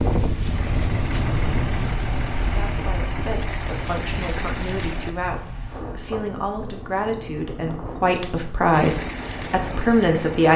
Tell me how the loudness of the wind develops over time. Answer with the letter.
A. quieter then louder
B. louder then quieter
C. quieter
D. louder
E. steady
C.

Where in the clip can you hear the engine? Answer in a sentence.
You can hear the engine from 0.0 to 5.2 s and from 8.7 to 10.5 s.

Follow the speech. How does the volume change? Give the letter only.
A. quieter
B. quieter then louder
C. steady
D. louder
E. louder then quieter
D.